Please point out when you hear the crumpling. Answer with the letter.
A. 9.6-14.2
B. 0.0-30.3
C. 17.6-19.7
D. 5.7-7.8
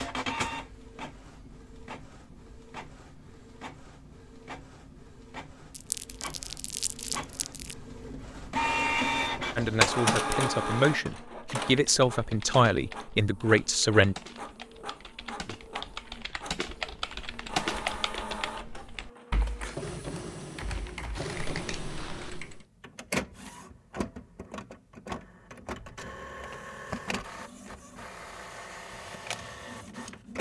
D.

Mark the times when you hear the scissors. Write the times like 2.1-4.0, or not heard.
21.1-22.4.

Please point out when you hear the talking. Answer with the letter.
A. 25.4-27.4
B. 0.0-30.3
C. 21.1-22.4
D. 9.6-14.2
D.